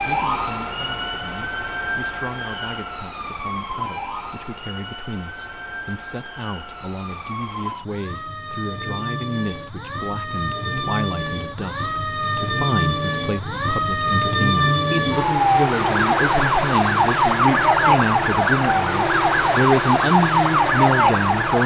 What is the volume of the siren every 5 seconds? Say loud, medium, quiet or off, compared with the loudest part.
medium, quiet, medium, loud, loud.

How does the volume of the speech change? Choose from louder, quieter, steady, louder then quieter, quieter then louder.
louder.